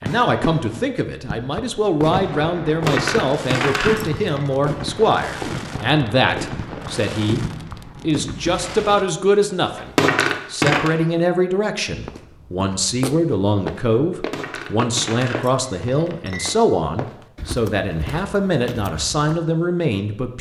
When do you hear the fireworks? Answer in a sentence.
You can hear the fireworks from 0.0 to 9.1 s.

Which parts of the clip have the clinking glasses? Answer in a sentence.
The clinking glasses can be heard from 2.6 to 4.5 s, from 9.8 to 10.9 s and from 14.1 to 16.6 s.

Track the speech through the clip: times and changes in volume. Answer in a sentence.
You can hear the speech from 0.0 to 20.3 s, at a steady volume.